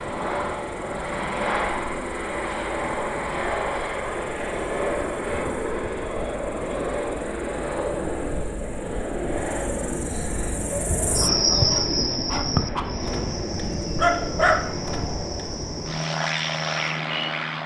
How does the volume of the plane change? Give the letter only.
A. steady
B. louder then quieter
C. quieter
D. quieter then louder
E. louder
A.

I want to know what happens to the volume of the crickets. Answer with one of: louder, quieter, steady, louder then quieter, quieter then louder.
louder then quieter.